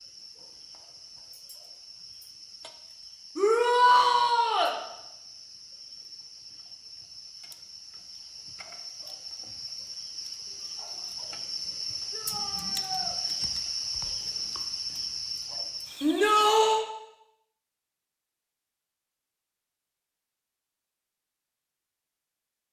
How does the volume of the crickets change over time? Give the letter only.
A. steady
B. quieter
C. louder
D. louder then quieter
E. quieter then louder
C.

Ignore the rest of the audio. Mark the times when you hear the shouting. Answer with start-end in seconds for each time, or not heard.
3.4-4.8, 12.1-13.2, 16.0-16.9.